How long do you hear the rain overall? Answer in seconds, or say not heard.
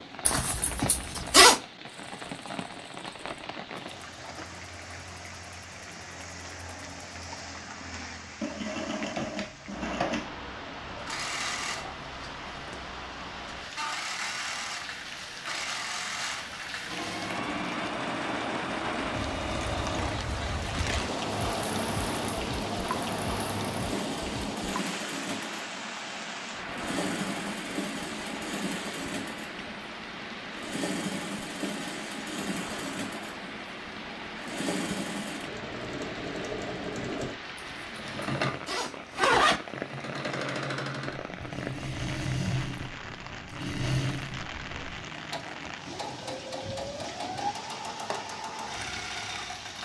50 s.